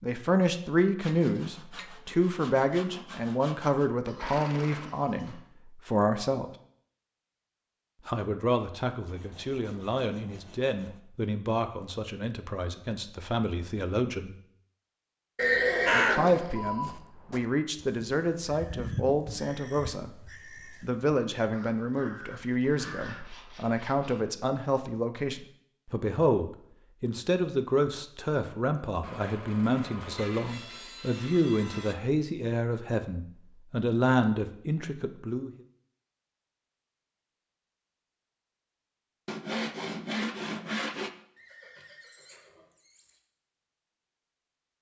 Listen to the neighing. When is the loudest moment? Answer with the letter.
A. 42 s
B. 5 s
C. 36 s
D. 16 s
D.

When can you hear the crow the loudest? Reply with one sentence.
The loudest moment of the crow is at 16 seconds.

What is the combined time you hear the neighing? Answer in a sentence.
The neighing can be heard for 5 seconds in total.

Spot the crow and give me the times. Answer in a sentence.
You can hear the crow from 15.8 to 23.3 s.